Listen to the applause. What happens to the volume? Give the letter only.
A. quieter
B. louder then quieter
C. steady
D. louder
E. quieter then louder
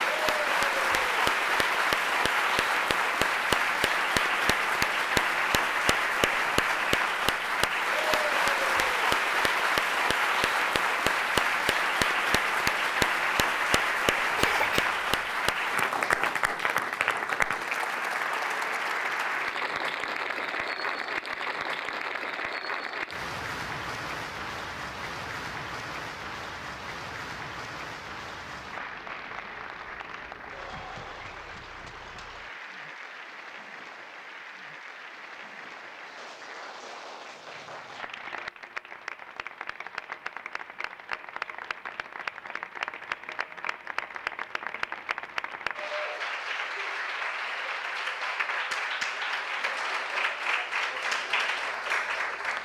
E.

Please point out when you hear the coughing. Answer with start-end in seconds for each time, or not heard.
14.3-14.9.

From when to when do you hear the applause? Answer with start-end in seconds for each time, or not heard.
0.0-52.6.